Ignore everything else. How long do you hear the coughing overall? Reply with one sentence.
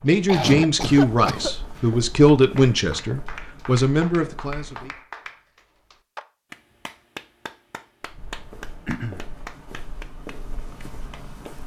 The coughing can be heard for 2 seconds in total.